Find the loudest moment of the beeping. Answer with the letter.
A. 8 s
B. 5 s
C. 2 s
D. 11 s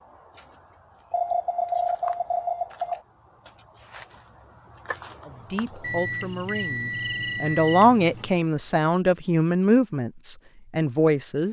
C.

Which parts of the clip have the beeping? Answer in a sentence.
The beeping can be heard from 1.1 to 3.0 s and from 5.8 to 8.4 s.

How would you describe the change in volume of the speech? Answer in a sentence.
The volume of the speech goes up, then down.